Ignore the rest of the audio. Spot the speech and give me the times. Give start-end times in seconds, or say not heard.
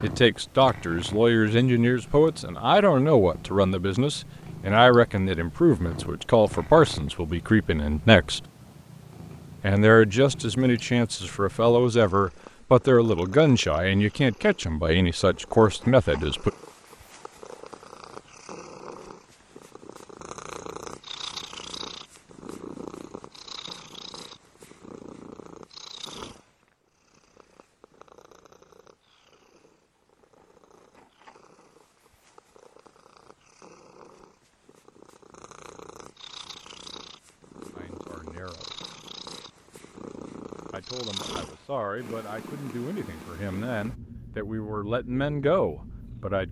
0.0-8.4, 9.6-16.5, 37.8-38.8, 40.7-46.4.